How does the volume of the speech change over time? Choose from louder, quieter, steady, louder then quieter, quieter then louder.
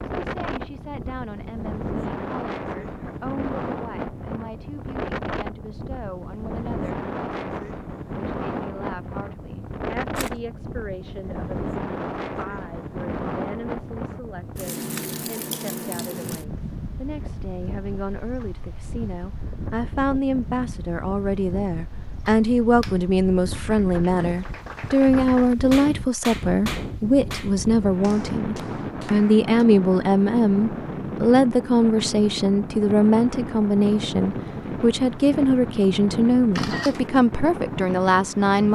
louder.